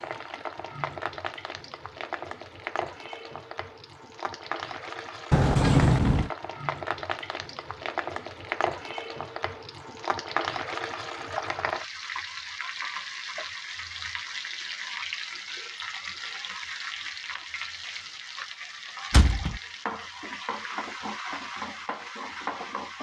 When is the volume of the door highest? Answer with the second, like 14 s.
6 s.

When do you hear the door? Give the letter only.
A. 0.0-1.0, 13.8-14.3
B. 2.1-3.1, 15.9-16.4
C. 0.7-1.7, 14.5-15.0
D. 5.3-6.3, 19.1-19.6
D.